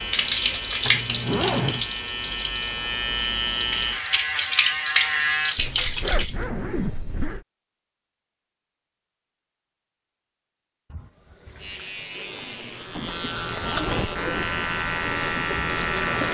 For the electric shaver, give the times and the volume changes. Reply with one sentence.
You can hear the electric shaver from 0.0 to 5.6 s, getting louder; and from 11.6 to 16.3 s, getting louder.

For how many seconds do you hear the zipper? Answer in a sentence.
You can hear the zipper for 5 seconds altogether.